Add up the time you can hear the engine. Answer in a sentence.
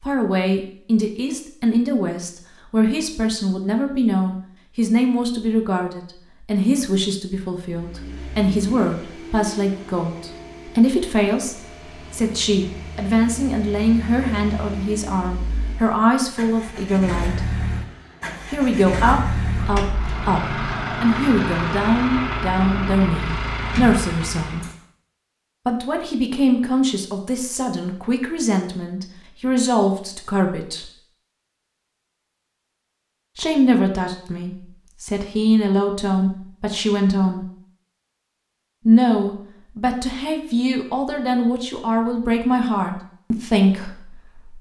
The engine can be heard for 17 seconds in total.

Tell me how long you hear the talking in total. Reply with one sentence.
You can hear the talking for 39 seconds altogether.